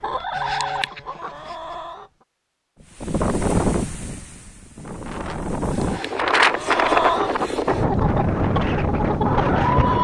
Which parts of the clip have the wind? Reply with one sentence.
The wind can be heard from 3.0 to 9.9 s.